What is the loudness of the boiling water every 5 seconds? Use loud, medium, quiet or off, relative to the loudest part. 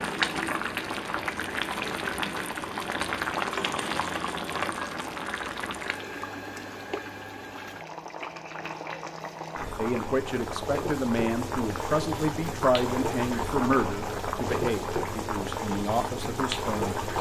loud, medium, loud, loud.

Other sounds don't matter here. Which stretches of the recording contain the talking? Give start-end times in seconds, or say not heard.
9.8-16.9.